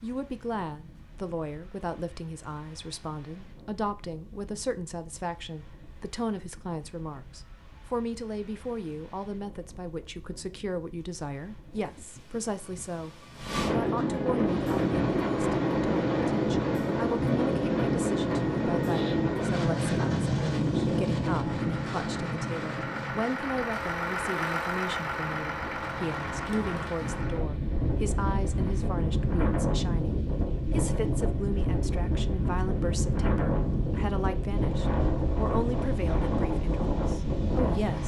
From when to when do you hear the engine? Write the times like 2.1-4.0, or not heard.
14.4-28.9.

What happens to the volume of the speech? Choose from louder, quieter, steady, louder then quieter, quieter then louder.
steady.